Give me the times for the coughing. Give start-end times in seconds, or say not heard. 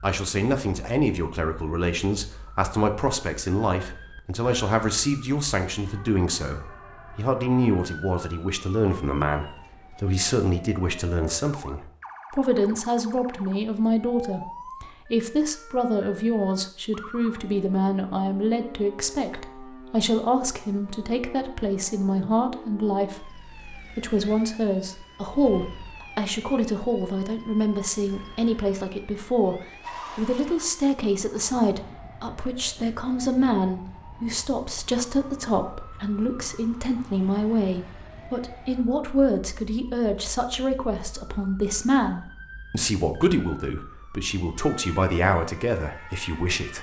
not heard.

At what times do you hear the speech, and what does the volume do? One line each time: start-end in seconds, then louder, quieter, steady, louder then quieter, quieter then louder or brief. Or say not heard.
0.0-46.7 steady.